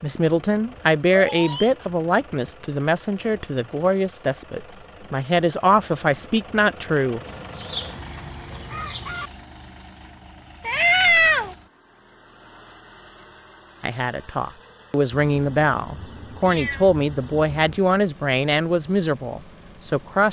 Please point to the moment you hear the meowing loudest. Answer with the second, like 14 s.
11 s.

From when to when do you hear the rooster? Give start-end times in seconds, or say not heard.
7.2-9.3.